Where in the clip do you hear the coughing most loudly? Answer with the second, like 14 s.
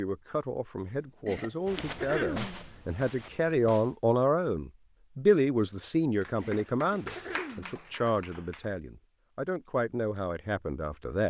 2 s.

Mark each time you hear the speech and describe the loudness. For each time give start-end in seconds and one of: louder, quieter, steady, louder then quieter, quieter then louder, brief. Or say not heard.
0.0-11.2 louder then quieter.